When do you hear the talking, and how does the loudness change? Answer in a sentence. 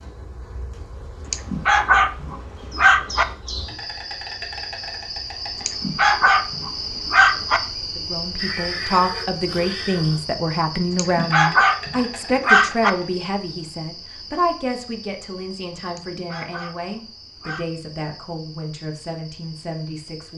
The talking can be heard from 8.0 to 20.3 s, getting quieter.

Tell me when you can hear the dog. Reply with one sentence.
You can hear the dog from 1.3 to 3.2 s, from 5.7 to 7.6 s, from 10.9 to 12.9 s and from 15.9 to 17.7 s.